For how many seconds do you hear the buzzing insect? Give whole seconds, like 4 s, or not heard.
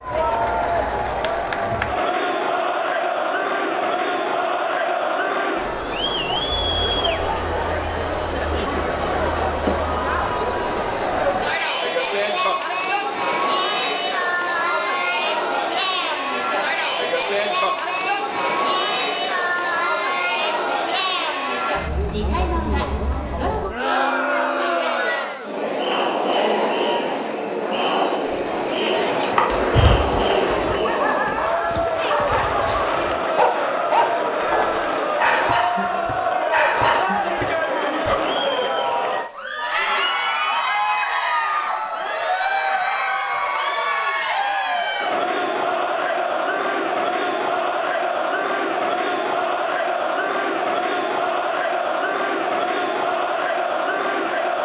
2 s.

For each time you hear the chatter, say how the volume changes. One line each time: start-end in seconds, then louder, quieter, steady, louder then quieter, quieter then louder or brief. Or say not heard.
0.0-54.6 steady.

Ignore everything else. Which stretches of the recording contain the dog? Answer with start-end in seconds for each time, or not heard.
29.5-38.2.